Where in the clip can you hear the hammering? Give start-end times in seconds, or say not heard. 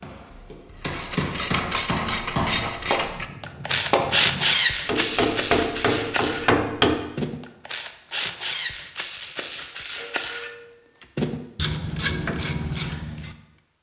0.0-7.0.